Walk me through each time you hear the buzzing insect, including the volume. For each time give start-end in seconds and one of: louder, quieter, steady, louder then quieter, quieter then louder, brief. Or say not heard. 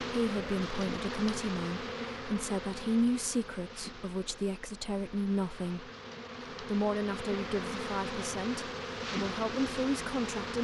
0.0-10.6 quieter then louder.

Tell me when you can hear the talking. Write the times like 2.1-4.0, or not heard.
0.0-5.9, 6.6-10.6.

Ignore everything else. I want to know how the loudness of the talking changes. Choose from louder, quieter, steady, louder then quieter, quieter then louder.
steady.